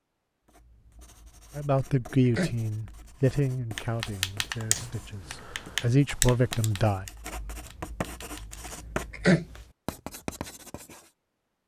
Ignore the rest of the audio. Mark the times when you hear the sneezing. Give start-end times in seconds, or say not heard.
1.8-2.5, 8.7-9.4.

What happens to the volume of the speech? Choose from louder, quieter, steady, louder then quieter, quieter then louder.
quieter then louder.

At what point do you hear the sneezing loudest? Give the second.
9 s.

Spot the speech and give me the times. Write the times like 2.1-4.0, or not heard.
1.6-7.0.